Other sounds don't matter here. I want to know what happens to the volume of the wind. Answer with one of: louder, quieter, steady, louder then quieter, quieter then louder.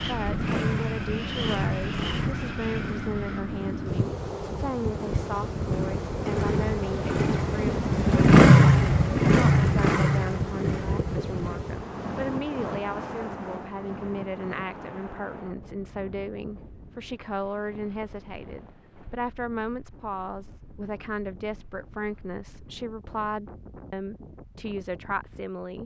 quieter.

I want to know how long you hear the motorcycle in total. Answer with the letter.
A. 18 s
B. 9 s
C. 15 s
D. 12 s
D.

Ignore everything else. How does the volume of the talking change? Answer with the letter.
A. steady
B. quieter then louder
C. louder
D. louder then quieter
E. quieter
A.